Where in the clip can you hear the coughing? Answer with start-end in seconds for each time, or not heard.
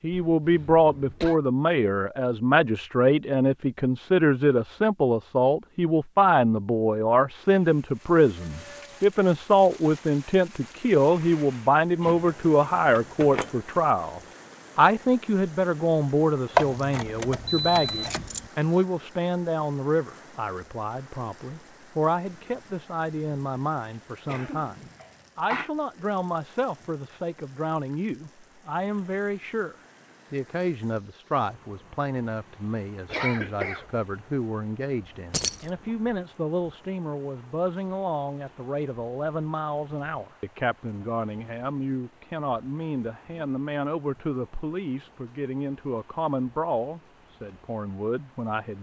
0.3-1.4, 24.2-25.7, 33.0-33.9.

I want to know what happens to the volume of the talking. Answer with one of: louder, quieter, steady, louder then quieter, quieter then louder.
quieter.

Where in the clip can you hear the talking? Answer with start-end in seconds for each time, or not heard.
0.0-48.7.